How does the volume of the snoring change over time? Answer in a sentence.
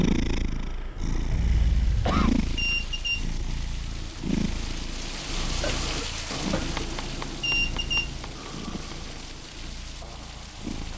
The loudness of the snoring goes up, then down.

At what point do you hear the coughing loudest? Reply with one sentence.
The loudest moment of the coughing is at 2 seconds.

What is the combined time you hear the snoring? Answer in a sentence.
The snoring can be heard for 6 seconds in total.